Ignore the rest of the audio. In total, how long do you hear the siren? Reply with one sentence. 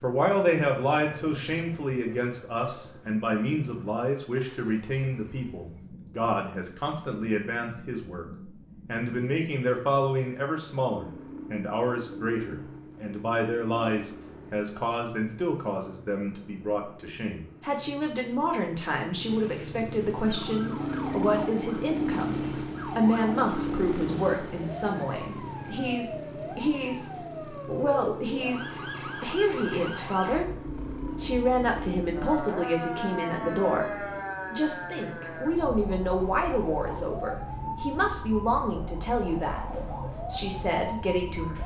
The siren can be heard for 21 seconds in total.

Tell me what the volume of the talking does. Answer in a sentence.
The loudness of the talking stays about the same.